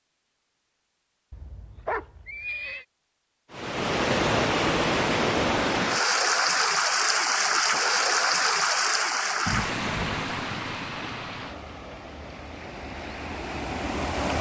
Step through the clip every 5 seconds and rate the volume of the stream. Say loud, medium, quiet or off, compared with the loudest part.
loud, loud, medium.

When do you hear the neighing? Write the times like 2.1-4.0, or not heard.
1.3-2.9, 9.4-10.2.